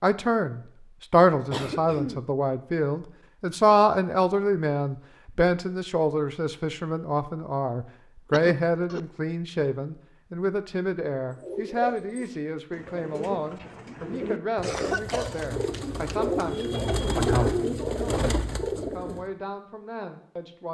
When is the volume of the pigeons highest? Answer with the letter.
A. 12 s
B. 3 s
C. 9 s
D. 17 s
D.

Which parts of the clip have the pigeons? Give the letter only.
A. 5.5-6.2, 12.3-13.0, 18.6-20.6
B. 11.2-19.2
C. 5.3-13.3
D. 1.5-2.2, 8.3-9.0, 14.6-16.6
B.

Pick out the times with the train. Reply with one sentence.
The train can't be heard in this clip.